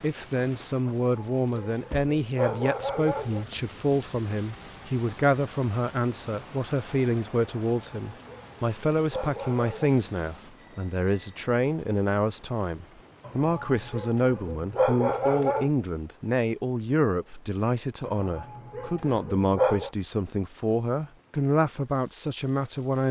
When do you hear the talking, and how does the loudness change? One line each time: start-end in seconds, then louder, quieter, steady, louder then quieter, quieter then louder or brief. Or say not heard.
0.0-23.0 steady.